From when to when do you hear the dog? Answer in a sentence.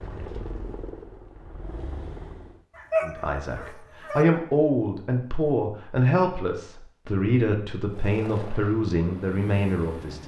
You can hear the dog from 2.8 to 4.2 s.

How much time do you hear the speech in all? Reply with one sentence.
You can hear the speech for 7 seconds altogether.